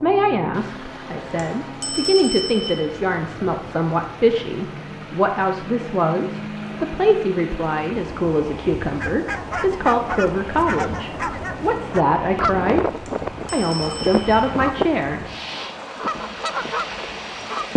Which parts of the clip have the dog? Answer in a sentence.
The dog can't be heard in this clip.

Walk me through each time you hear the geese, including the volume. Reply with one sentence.
You can hear the geese from 8.9 to 17.7 s, at a steady volume.